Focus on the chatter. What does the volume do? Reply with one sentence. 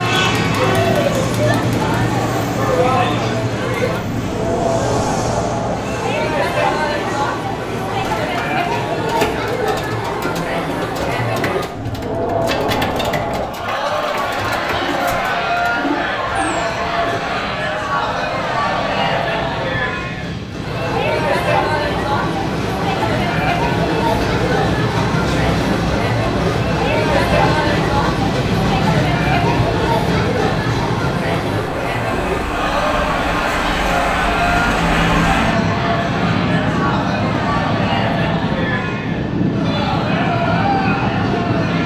The loudness of the chatter stays about the same.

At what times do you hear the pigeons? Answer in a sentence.
You can hear the pigeons from 8.2 to 17.2 s.